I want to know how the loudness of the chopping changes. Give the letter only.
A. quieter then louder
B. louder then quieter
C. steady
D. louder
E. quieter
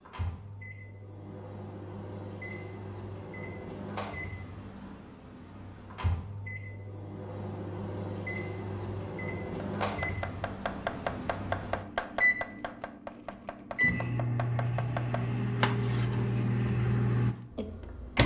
A.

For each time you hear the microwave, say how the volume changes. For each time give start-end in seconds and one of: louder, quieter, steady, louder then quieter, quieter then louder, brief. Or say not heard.
0.0-18.2 louder.